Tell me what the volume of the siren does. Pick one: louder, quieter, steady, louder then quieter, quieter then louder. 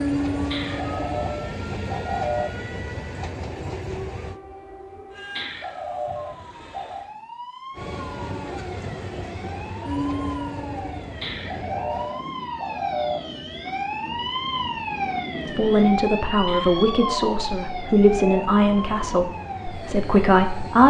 louder.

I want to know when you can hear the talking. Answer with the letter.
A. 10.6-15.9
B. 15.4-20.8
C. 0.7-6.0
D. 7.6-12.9
B.